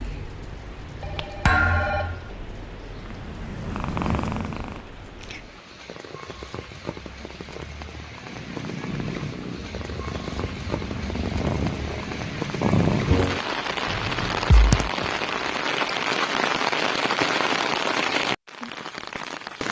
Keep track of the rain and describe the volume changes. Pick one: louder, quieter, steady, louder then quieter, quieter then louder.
louder.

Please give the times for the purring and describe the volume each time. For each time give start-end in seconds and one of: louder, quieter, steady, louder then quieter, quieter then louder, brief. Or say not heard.
2.9-4.8 brief
8.2-15.6 louder.